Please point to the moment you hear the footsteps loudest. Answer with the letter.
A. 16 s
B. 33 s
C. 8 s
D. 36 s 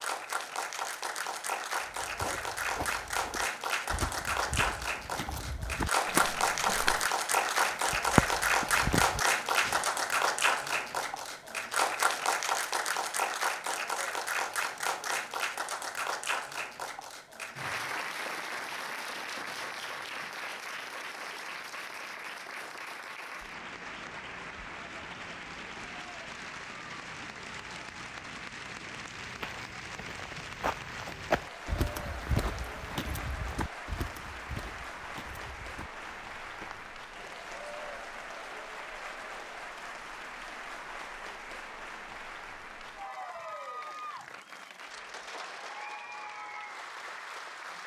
C.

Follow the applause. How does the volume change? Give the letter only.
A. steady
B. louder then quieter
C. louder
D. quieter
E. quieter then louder
D.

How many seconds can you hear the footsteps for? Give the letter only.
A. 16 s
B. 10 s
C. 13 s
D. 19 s
A.